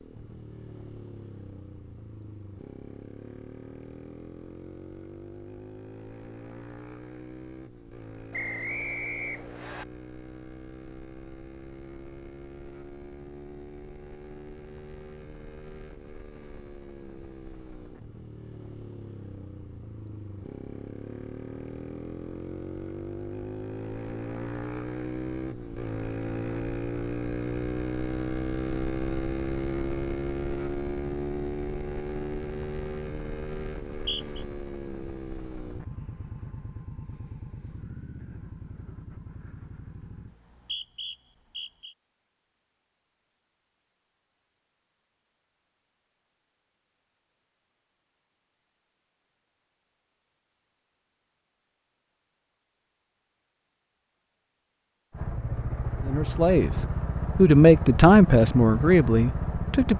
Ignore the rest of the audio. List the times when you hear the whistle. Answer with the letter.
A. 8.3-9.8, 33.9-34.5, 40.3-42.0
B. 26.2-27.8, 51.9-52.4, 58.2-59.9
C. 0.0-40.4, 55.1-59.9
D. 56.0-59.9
A.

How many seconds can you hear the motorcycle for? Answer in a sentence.
You can hear the motorcycle for 45 seconds altogether.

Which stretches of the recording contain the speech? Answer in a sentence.
The speech can be heard from 56.0 to 59.9 s.